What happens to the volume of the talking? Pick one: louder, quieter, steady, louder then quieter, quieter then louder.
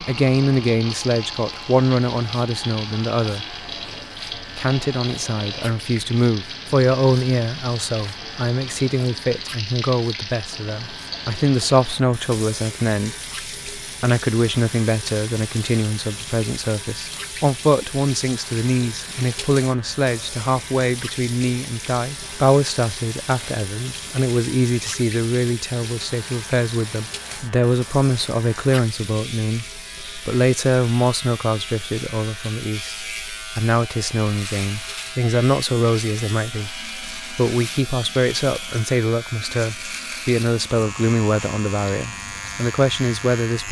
steady.